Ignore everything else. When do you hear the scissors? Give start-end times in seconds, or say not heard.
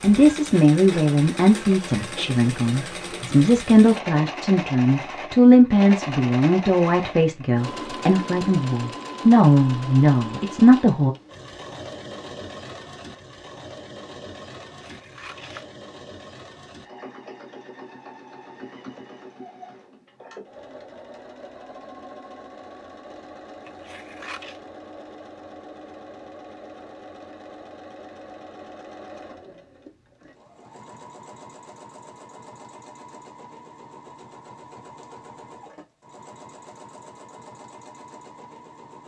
14.8-15.7, 23.6-24.6.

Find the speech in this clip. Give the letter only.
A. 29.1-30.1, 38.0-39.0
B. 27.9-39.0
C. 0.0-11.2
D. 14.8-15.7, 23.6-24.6
C.